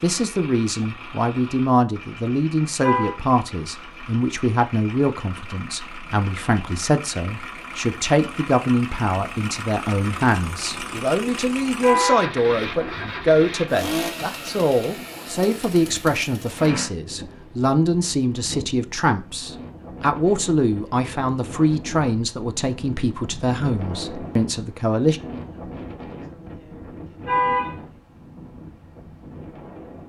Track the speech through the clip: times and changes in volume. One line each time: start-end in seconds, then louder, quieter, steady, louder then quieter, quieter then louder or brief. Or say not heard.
0.0-25.2 steady.